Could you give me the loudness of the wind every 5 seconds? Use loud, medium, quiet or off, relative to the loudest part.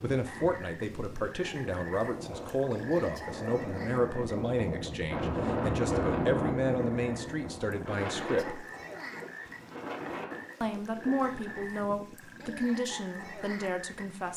medium, loud, medium.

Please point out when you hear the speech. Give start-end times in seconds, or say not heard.
0.0-8.7, 10.6-14.3.